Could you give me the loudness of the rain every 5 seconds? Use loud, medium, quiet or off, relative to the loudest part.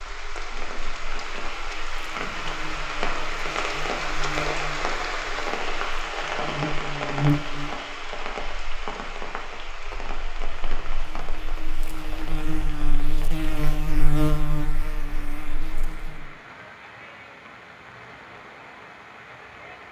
loud, loud, medium, quiet.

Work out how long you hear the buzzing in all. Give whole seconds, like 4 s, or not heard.
16 s.